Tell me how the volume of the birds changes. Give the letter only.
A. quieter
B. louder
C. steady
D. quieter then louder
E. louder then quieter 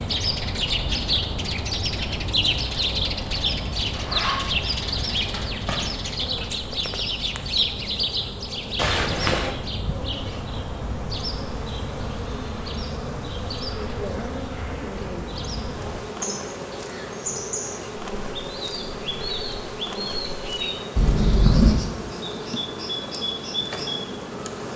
A.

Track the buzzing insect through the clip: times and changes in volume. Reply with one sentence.
You can hear the buzzing insect from 0.0 to 24.7 s, getting louder.